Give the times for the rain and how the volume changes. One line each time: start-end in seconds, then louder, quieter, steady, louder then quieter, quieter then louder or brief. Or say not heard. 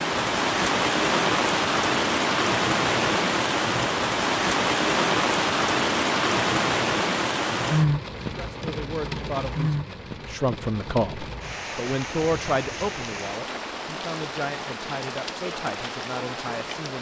0.0-16.9 quieter.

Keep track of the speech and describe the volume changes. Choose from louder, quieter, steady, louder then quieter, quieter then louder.
louder then quieter.